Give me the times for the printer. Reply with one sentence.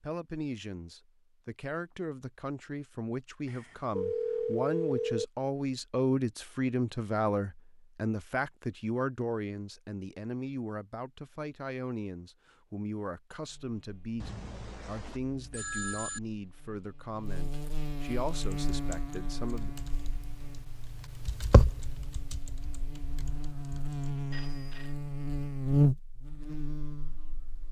The printer can't be heard in this clip.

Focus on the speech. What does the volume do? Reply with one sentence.
The loudness of the speech goes up, then down.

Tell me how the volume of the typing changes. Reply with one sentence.
The volume of the typing goes up, then down.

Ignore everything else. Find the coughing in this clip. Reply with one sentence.
You can't hear the coughing here.